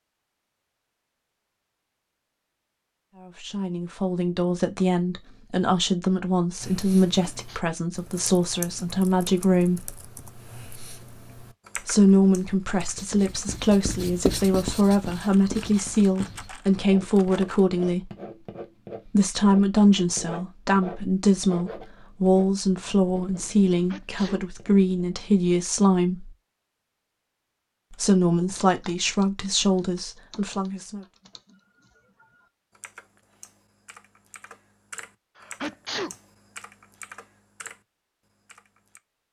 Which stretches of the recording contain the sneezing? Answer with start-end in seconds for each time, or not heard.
7.0-7.7, 23.7-24.4, 35.4-36.1.